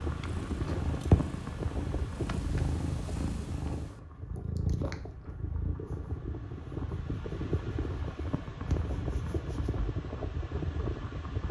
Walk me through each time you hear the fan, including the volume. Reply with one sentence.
You can hear the fan from 0.0 to 11.4 s, getting quieter then louder.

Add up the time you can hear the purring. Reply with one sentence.
The purring can be heard for 10 seconds in total.